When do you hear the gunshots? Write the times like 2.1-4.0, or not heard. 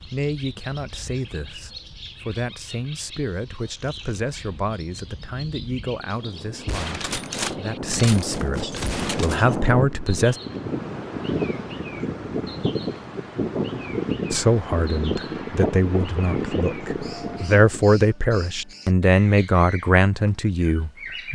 6.7-9.4.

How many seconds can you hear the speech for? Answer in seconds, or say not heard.
17 s.